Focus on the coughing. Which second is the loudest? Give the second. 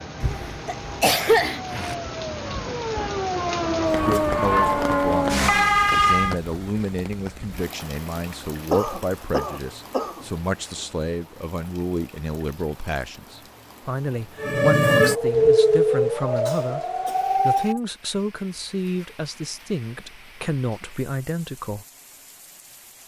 1 s.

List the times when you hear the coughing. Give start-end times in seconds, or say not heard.
0.2-1.9, 8.7-10.2, 16.4-17.6.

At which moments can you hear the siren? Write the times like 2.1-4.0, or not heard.
0.0-6.3, 14.3-17.8.